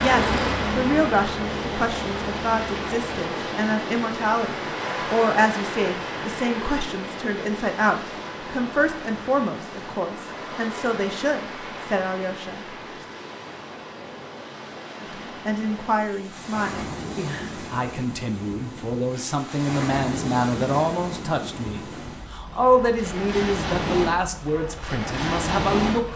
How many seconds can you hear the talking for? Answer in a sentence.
The talking can be heard for 24 seconds in total.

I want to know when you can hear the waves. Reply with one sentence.
The waves can be heard from 0.0 to 26.1 s.